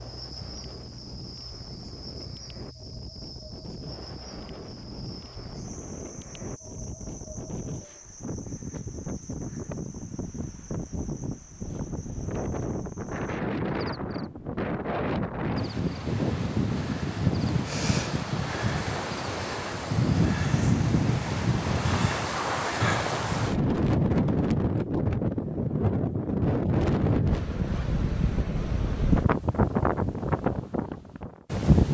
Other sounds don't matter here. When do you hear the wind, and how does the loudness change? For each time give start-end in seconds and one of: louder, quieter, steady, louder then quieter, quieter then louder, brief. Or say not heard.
0.0-31.9 louder.